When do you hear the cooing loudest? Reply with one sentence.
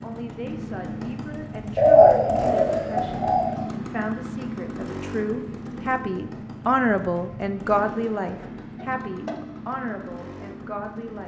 The loudest moment of the cooing is at 2 seconds.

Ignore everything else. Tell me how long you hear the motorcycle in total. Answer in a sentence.
You can hear the motorcycle for 11 seconds altogether.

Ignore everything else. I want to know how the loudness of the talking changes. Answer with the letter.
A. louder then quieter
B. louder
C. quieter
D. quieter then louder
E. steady
A.